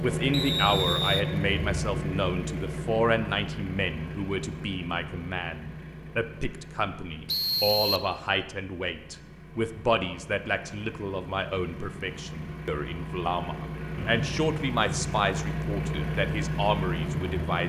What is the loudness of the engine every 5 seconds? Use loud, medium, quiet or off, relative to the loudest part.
loud, quiet, medium, loud.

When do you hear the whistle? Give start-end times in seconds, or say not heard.
0.3-1.2, 7.2-8.1, 13.9-14.4.